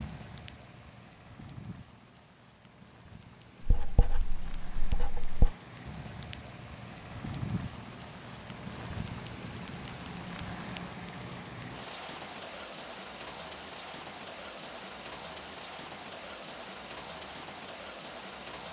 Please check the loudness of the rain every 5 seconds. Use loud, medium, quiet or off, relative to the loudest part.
medium, loud, loud, loud.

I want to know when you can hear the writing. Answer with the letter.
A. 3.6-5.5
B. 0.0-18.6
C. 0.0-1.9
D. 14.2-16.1
A.